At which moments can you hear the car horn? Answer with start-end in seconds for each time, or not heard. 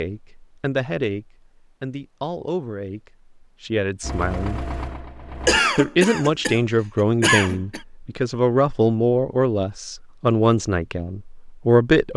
not heard.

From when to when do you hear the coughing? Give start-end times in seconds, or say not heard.
5.5-7.8.